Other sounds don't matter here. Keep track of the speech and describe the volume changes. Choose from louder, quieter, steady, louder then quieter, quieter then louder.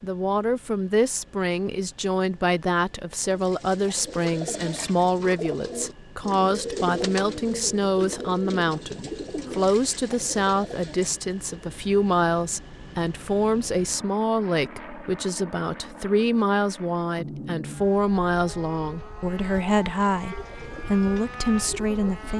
steady.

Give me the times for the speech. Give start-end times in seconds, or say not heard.
0.0-22.3.